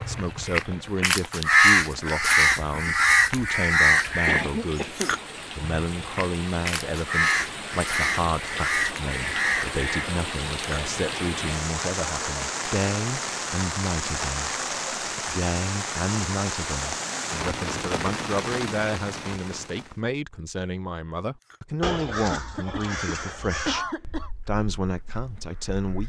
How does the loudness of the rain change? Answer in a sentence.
The loudness of the rain goes up.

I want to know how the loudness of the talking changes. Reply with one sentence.
The volume of the talking stays about the same.